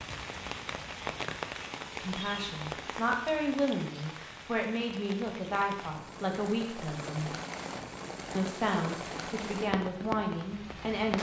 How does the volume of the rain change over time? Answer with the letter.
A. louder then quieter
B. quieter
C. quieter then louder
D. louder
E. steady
C.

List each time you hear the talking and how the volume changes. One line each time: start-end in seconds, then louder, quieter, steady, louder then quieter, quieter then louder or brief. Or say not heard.
2.0-7.3 steady
8.3-11.1 brief.